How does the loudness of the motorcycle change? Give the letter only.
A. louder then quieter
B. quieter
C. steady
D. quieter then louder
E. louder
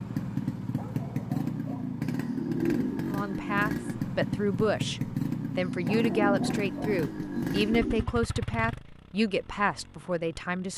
B.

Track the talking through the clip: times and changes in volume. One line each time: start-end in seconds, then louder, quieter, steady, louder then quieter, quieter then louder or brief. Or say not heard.
3.0-10.7 steady.